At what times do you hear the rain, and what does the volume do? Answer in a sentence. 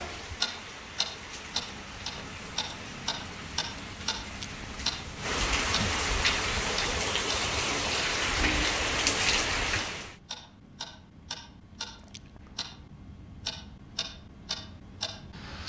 The rain can be heard from 0.0 to 10.2 s, getting louder.